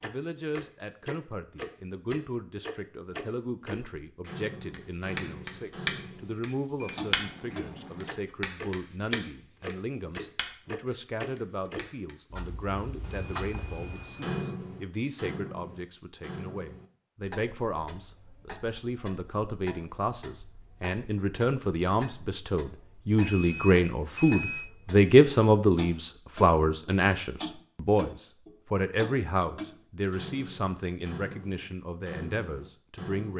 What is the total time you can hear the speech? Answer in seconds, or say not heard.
33 s.